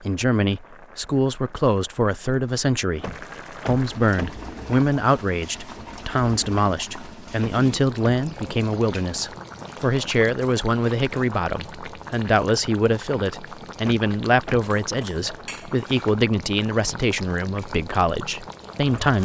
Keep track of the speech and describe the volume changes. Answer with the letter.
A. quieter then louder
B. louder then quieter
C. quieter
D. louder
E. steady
E.